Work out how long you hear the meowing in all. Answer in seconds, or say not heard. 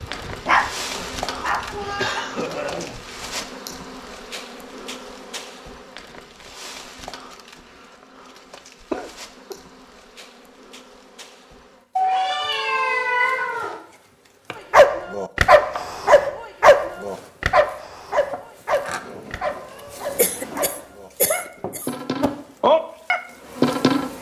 5 s.